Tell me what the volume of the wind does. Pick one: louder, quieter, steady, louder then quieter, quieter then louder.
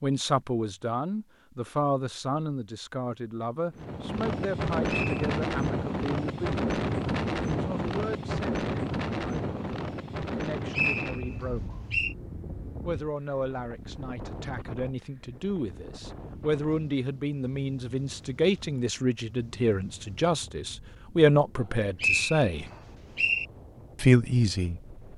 quieter.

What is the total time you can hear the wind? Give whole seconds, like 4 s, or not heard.
21 s.